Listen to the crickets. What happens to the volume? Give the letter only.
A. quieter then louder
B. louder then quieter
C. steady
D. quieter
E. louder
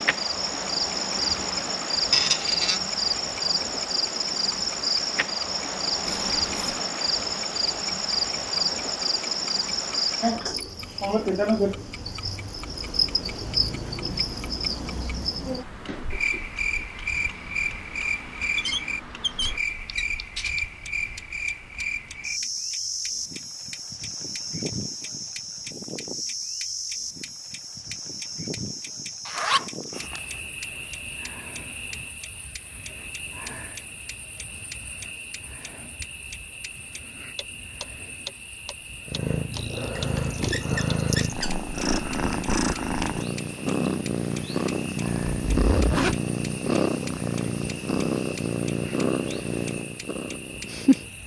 D.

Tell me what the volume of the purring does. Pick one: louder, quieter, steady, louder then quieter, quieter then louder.
steady.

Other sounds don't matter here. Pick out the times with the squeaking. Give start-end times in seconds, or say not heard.
2.1-2.8, 18.6-20.6, 40.0-41.5.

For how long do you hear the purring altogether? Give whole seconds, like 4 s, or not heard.
12 s.